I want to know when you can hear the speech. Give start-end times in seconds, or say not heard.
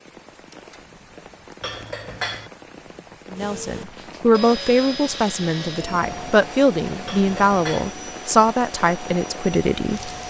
3.3-10.1.